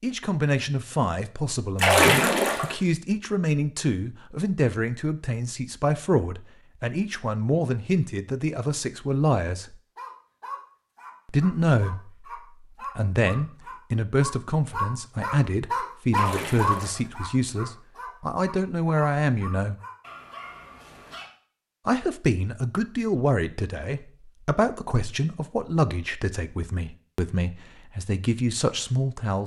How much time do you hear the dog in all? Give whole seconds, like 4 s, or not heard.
11 s.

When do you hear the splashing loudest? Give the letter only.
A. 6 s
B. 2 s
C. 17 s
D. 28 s
B.